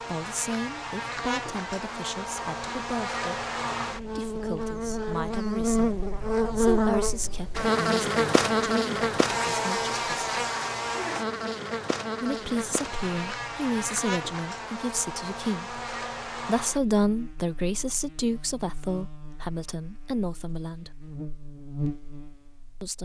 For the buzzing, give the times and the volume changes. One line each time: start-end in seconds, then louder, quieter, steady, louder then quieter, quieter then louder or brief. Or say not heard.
0.0-23.0 louder then quieter.